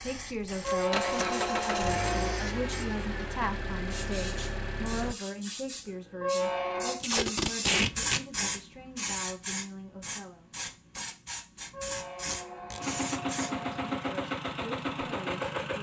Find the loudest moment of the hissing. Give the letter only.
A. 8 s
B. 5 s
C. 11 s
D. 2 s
A.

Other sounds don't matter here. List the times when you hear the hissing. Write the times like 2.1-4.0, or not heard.
0.0-13.7.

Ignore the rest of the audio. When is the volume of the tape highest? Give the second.
8 s.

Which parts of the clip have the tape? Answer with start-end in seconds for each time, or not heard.
0.6-1.3, 7.0-8.2, 12.2-12.8.